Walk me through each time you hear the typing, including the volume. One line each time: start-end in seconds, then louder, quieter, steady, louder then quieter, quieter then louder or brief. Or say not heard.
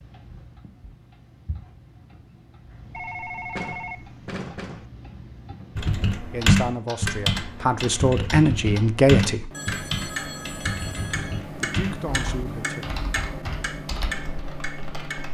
5.8-15.2 quieter.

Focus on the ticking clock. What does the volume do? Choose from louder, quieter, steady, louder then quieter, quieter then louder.
louder.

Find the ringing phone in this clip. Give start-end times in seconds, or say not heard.
2.9-4.8, 9.5-11.4.